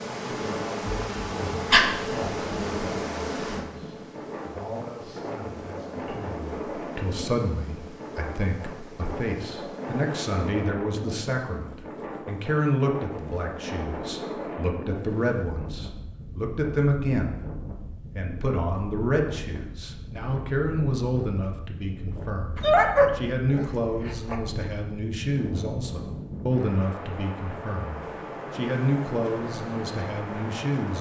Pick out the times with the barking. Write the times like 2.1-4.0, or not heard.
0.8-1.9, 22.6-24.4.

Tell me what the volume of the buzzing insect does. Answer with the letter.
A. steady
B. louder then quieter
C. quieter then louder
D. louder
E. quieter
E.